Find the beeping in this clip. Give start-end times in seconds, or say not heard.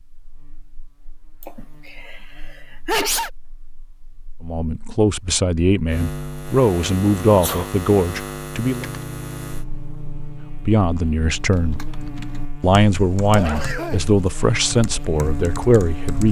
not heard.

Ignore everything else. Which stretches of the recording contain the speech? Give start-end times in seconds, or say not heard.
4.4-8.8, 10.7-11.8, 12.6-16.2.